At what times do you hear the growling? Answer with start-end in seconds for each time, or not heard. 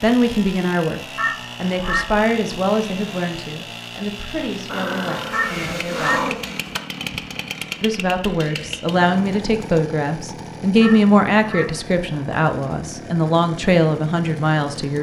4.7-6.5.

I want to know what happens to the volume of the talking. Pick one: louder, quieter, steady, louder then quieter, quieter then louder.
quieter then louder.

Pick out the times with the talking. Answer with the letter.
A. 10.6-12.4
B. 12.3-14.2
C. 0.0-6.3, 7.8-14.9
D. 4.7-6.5
C.